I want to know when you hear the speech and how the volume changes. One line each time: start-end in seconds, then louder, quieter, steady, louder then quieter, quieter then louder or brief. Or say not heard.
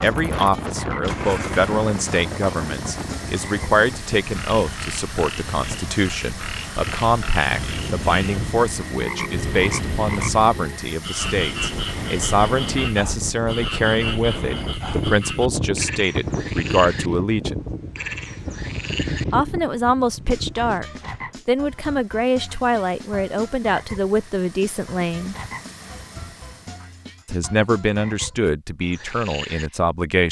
0.0-17.6 steady
19.3-25.4 steady
27.2-30.2 brief.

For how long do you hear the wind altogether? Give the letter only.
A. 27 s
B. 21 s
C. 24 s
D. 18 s
B.